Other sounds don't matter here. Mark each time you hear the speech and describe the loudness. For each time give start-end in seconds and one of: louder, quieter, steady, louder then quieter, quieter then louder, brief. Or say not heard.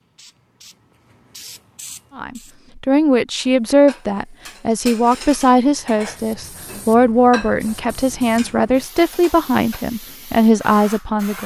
2.1-11.4 steady.